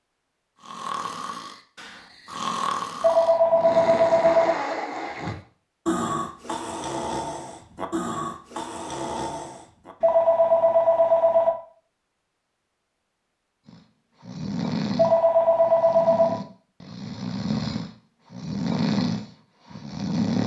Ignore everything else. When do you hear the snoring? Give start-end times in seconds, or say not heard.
0.6-9.9, 13.7-20.4.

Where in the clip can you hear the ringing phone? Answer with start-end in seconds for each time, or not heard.
3.0-4.5, 10.0-11.5, 14.9-16.4.